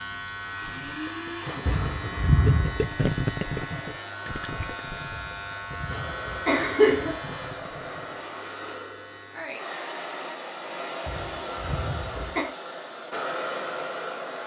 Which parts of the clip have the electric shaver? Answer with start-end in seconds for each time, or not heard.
0.0-9.5.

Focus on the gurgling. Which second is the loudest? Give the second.
3 s.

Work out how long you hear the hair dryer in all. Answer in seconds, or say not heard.
14 s.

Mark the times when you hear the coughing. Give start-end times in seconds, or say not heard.
1.6-2.8, 5.2-7.2, 11.1-12.4.